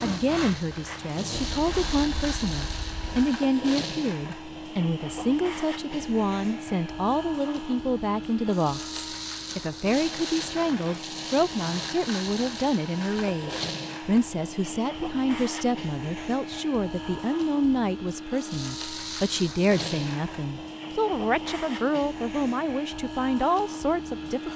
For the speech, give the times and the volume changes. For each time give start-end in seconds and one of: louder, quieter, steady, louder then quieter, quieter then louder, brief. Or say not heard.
0.0-24.5 steady.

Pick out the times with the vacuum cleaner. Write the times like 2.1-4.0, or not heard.
0.0-24.5.